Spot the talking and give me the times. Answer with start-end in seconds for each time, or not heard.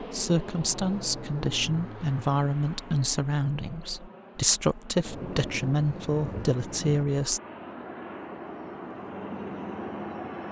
0.0-7.4.